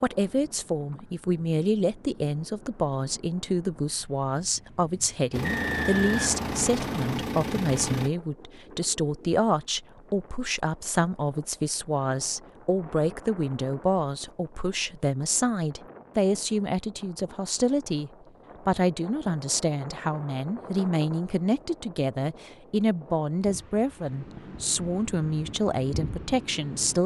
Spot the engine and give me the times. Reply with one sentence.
The engine can be heard from 5.3 to 8.1 s.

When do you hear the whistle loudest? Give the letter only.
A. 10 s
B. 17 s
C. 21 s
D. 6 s
D.